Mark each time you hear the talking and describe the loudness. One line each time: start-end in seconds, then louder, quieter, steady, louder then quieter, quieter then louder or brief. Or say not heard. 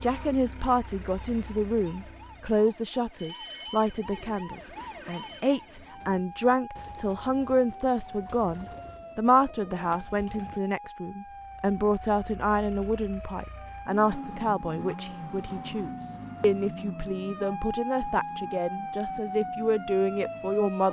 0.0-20.8 steady.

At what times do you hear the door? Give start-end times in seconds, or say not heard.
not heard.